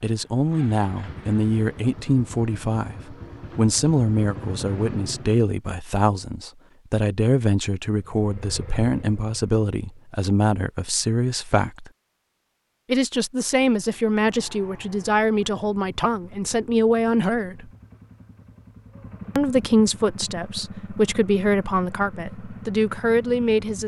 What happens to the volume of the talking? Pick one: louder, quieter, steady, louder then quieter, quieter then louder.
steady.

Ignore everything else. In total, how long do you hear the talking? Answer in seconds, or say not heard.
21 s.